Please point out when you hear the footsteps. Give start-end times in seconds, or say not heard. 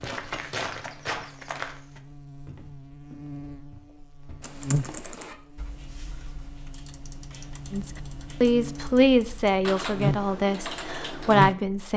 0.0-5.3.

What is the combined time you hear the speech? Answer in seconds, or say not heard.
4 s.